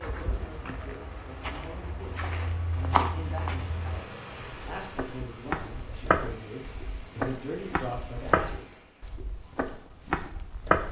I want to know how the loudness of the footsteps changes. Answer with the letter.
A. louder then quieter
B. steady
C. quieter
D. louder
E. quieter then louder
D.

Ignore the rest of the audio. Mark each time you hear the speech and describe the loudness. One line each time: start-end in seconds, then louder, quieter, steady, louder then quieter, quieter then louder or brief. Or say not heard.
0.0-8.8 louder.